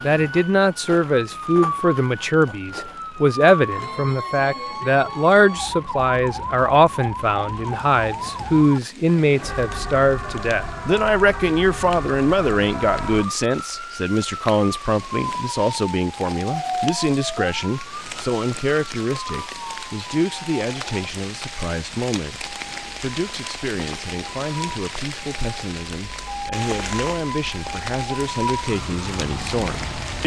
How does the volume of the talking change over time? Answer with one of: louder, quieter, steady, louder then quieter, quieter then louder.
quieter.